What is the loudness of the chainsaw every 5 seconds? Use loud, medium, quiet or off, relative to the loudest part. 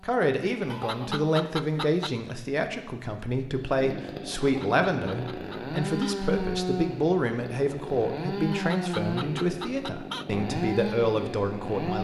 medium, loud, loud.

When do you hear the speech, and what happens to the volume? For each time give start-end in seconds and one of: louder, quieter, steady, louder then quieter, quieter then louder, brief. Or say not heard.
0.0-11.9 steady.